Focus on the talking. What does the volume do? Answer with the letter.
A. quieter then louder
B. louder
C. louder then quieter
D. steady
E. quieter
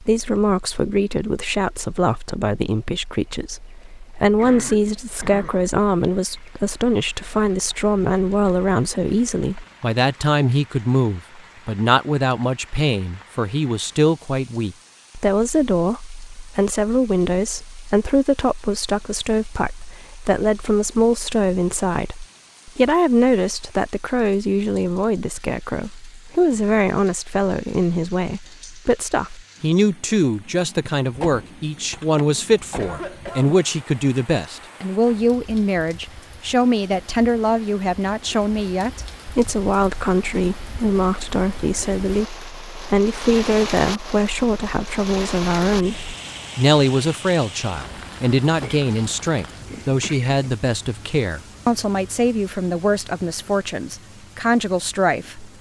D.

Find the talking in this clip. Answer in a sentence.
You can hear the talking from 0.0 to 55.5 s.